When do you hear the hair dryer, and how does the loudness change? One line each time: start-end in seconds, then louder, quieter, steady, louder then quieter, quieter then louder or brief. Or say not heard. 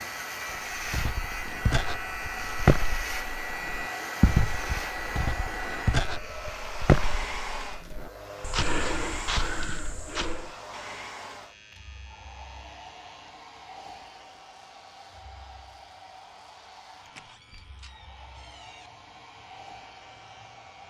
0.0-20.8 quieter.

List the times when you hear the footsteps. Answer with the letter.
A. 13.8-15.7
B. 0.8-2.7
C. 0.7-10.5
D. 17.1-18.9
C.